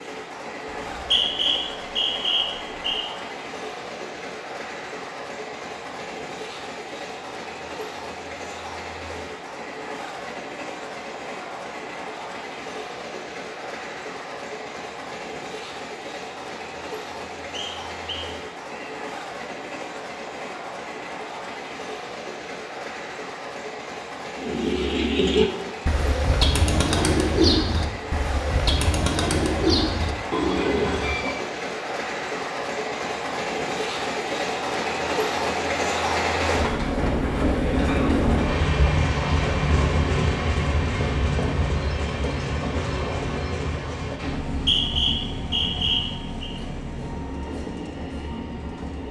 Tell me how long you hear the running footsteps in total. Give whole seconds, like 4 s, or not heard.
not heard.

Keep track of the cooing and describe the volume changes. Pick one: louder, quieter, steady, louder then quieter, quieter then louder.
steady.